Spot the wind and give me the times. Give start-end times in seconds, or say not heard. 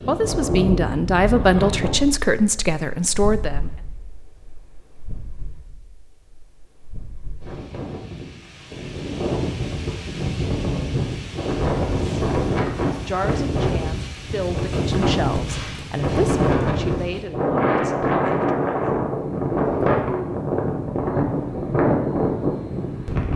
0.0-23.3.